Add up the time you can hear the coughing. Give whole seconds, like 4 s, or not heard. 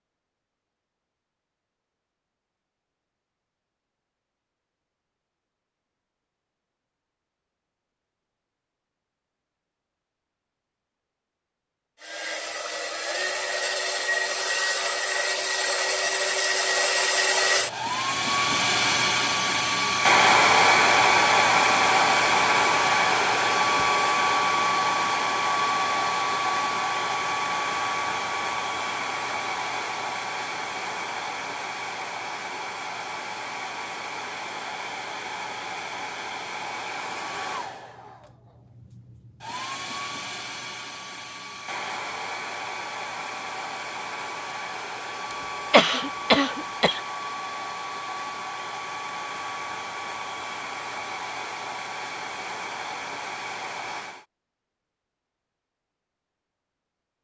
2 s.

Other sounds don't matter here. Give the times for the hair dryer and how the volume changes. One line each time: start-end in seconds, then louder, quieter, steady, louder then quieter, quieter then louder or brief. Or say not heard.
12.0-54.2 quieter.